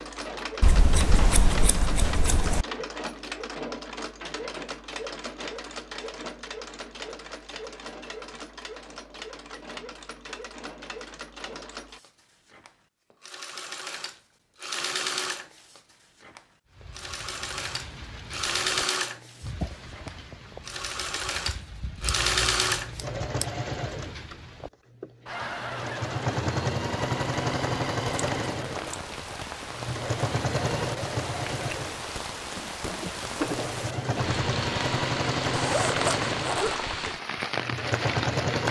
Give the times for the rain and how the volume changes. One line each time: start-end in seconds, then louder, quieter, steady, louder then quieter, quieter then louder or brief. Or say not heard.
16.7-38.6 louder.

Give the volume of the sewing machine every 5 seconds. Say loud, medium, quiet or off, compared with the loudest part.
medium, medium, medium, loud, loud, loud, loud, loud.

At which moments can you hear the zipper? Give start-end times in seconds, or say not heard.
35.5-36.8.